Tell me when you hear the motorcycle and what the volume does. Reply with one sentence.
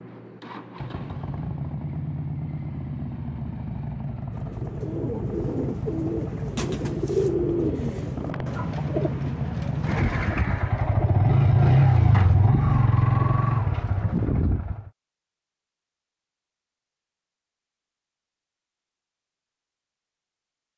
You can hear the motorcycle from 0.0 to 14.9 s, getting louder.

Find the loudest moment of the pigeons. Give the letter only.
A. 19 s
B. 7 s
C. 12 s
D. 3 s
B.